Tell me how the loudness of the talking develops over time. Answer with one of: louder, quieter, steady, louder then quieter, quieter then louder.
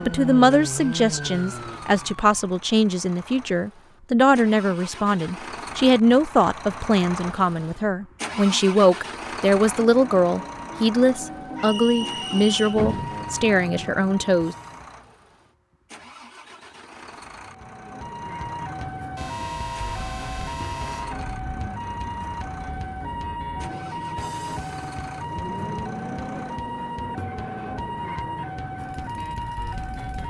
steady.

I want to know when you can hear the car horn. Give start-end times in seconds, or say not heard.
19.1-21.1.